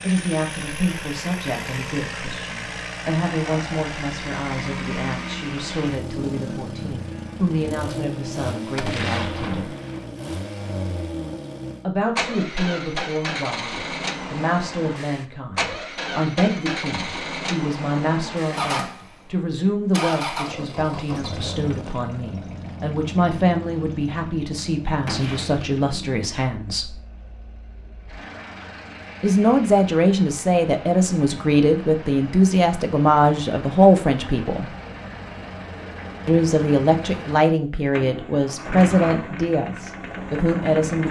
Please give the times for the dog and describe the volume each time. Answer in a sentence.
The dog can't be heard in this clip.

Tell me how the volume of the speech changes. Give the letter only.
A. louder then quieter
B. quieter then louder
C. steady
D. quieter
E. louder
E.